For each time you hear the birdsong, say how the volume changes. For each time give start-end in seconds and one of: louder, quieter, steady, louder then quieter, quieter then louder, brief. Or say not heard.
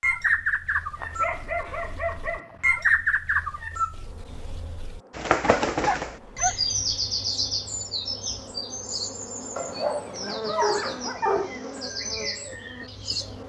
0.0-13.4 quieter.